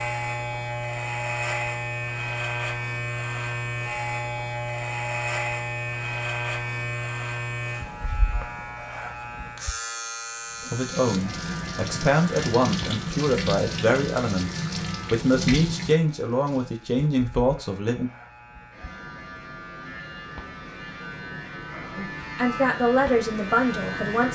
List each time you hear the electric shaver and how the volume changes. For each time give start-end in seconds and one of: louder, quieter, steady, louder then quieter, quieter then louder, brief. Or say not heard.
0.0-24.3 quieter then louder.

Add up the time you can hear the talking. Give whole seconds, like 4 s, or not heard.
10 s.